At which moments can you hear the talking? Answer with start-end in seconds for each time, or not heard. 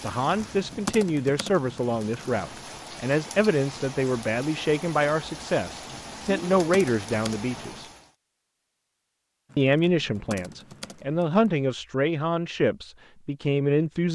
0.0-7.8, 9.6-14.1.